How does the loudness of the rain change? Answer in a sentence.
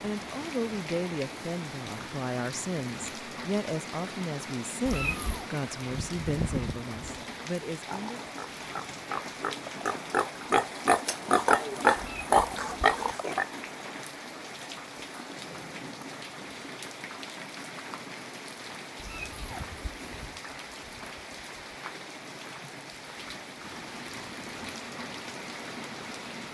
The volume of the rain stays about the same.